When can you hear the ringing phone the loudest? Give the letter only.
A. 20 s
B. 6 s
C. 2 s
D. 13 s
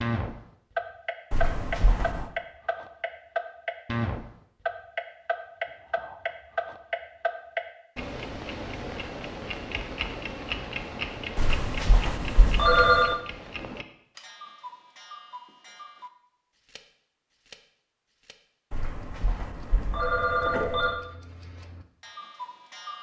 D.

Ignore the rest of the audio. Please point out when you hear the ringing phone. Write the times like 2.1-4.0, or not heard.
1.3-2.2, 11.3-13.2, 18.7-21.0.